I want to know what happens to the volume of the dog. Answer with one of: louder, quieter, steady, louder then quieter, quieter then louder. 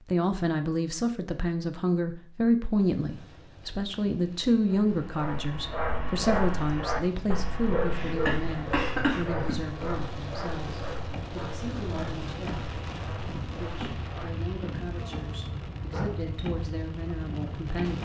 quieter.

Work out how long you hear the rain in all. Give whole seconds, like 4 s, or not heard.
15 s.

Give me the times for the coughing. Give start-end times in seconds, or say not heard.
8.2-9.6.